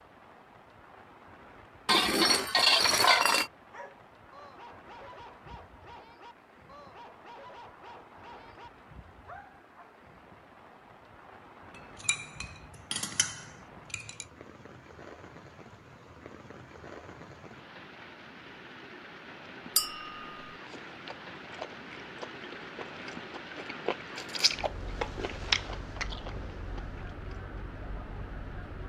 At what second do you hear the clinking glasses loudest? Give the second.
3 s.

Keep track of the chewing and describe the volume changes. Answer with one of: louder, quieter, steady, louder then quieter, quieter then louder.
louder then quieter.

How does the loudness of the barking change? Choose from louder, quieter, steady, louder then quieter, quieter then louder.
steady.